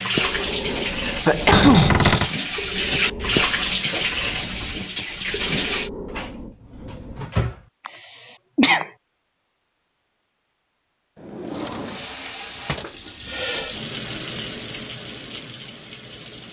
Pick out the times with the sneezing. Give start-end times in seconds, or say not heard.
1.1-2.0, 7.8-8.9, 12.8-13.8.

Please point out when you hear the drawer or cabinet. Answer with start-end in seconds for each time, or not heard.
1.5-2.3, 6.0-7.7, 11.2-12.9.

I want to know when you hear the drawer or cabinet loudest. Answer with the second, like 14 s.
2 s.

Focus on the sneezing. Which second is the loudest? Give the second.
2 s.